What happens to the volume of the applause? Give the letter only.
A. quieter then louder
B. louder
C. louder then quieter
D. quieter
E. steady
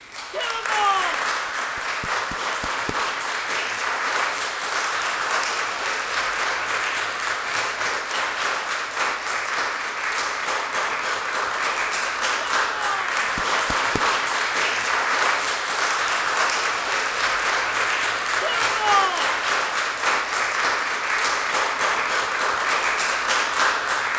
E.